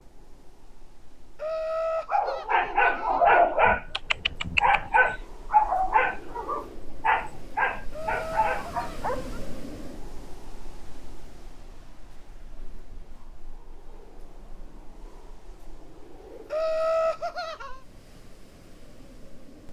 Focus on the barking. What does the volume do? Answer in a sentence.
The loudness of the barking goes down.